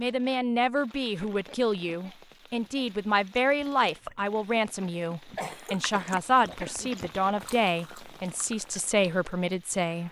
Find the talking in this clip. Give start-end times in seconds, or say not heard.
0.0-10.0.